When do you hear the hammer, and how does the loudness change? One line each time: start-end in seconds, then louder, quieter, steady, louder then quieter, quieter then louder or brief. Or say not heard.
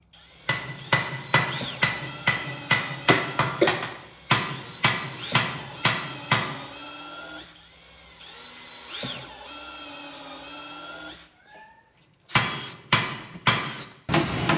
0.5-6.5 steady
12.3-14.5 brief.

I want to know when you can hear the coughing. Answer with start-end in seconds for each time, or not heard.
3.0-3.7.